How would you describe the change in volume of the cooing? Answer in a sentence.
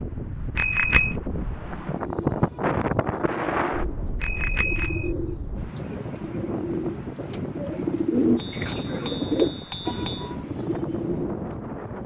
The loudness of the cooing goes up.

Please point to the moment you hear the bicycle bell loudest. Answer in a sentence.
The loudest moment of the bicycle bell is at 1 second.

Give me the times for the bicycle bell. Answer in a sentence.
The bicycle bell can be heard from 0.6 to 1.1 s, from 4.2 to 5.1 s and from 8.5 to 10.3 s.